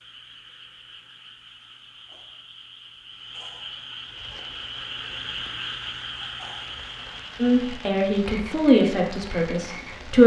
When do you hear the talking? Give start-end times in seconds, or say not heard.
7.4-10.2.